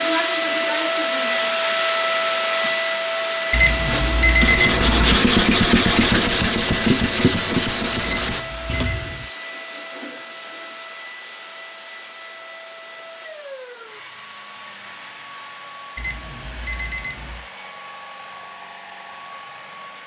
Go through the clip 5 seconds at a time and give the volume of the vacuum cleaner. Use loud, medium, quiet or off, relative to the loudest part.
loud, medium, quiet, quiet.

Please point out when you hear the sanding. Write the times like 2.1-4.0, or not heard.
3.9-9.3.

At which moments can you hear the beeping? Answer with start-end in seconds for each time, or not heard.
3.5-5.2, 8.0-8.8, 15.9-17.4.